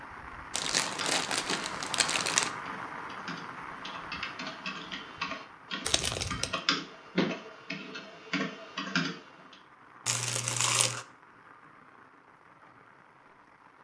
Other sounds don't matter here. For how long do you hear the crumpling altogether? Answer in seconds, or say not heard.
4 s.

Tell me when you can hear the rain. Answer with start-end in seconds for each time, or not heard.
0.0-13.7.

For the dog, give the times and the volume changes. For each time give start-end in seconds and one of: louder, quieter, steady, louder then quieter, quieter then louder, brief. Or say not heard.
not heard.